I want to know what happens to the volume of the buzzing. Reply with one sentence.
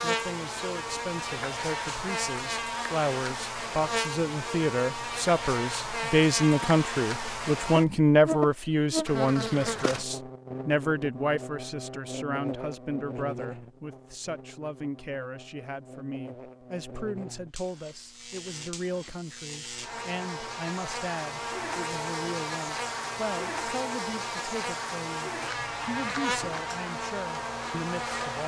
The loudness of the buzzing goes down, then up.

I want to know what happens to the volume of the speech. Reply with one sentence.
The volume of the speech goes up, then down.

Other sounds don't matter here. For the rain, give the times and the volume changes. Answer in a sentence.
You can't hear the rain here.